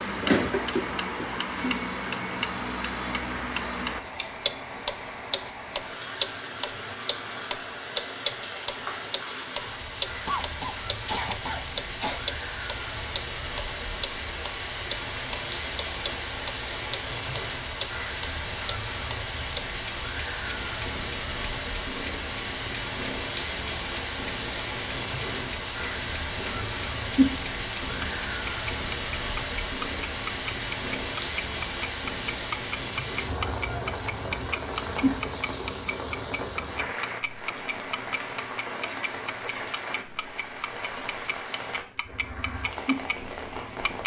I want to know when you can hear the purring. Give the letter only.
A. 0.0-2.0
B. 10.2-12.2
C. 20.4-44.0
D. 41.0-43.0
C.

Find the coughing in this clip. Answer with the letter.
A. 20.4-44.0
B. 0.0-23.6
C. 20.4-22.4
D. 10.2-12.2
D.